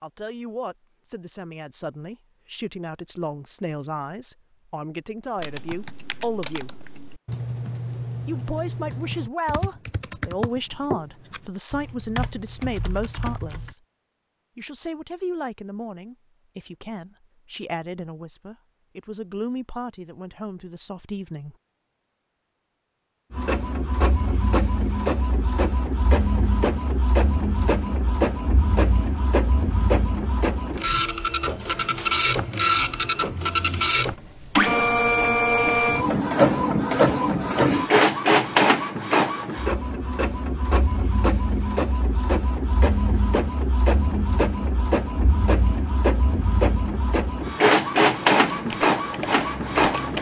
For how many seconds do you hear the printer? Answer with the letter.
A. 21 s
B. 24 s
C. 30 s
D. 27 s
D.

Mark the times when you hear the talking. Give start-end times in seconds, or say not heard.
0.0-6.8, 8.2-13.8, 14.6-21.6.